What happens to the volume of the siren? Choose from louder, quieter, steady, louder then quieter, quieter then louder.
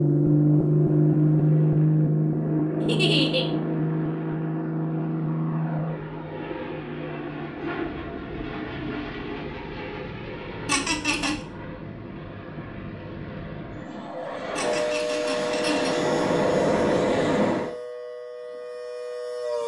quieter.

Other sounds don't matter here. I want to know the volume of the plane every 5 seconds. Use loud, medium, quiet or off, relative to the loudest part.
loud, medium, quiet, loud.